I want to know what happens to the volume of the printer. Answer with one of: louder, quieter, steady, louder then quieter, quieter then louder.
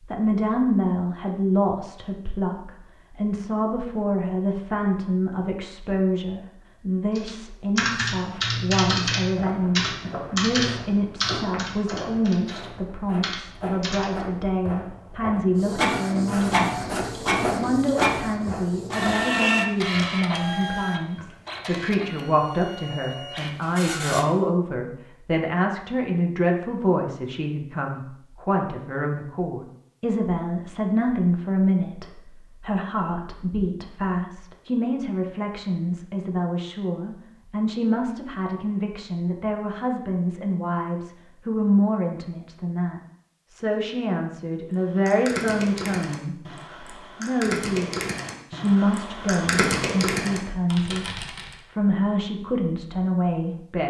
quieter.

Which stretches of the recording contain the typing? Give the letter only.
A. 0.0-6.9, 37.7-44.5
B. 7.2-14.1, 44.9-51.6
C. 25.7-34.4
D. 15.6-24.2
B.